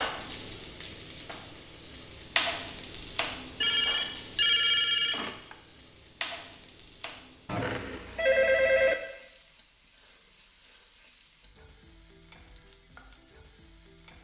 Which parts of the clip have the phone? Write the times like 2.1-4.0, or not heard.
3.6-5.5, 7.5-8.9.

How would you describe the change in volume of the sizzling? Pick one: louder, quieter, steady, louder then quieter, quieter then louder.
quieter.